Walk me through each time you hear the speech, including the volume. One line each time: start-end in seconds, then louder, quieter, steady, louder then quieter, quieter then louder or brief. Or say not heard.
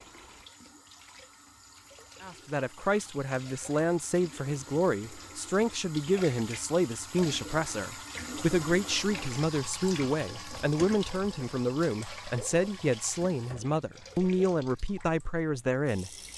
2.2-16.3 steady.